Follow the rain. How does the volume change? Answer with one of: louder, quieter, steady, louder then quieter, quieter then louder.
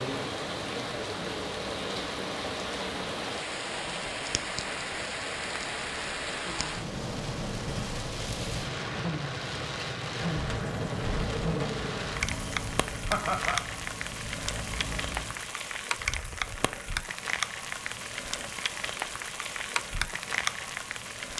steady.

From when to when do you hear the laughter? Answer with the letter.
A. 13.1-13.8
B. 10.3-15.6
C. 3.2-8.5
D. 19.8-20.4
A.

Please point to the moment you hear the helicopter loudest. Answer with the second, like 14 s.
11 s.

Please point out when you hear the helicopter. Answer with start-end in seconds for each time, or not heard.
10.3-15.6.